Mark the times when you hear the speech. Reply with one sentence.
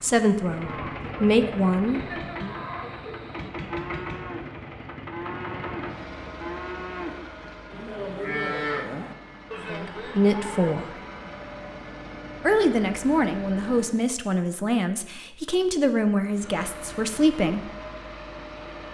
You can hear the speech from 0.0 to 2.5 s, from 9.7 to 10.9 s and from 12.4 to 17.7 s.